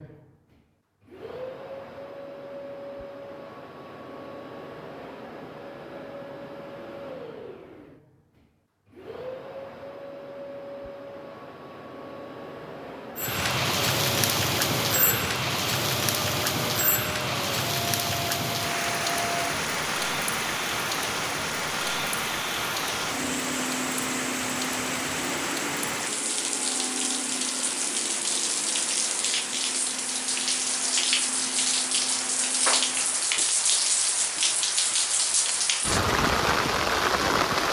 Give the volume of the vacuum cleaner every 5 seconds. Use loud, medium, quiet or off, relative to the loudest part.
medium, medium, medium, loud, loud, loud, medium, off.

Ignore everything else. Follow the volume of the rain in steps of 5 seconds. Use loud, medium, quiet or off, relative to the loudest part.
off, off, loud, loud, medium, medium, loud, loud.